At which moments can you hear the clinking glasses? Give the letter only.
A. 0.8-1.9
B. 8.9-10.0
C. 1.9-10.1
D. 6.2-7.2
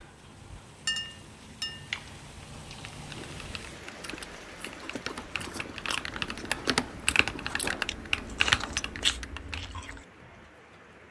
A.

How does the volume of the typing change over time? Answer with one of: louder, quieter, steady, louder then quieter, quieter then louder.
louder.